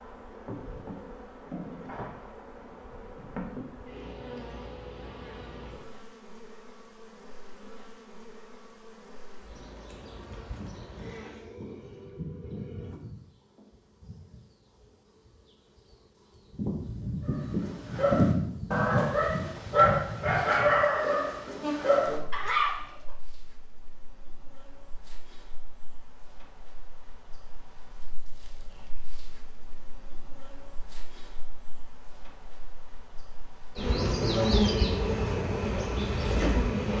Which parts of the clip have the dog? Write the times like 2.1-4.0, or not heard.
17.2-22.9.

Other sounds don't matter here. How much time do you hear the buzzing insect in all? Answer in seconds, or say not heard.
37 s.